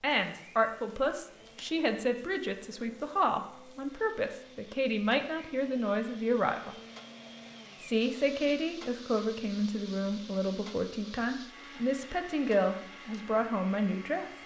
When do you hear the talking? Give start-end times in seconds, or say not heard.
0.0-6.8, 7.8-14.3.